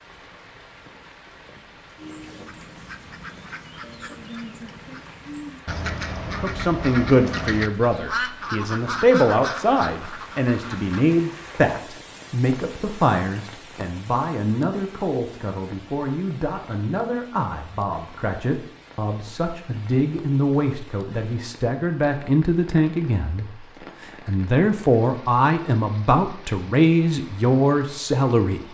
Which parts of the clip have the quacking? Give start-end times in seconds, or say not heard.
2.0-11.1.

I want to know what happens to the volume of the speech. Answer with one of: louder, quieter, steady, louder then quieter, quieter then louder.
quieter then louder.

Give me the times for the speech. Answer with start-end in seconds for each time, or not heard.
6.4-28.6.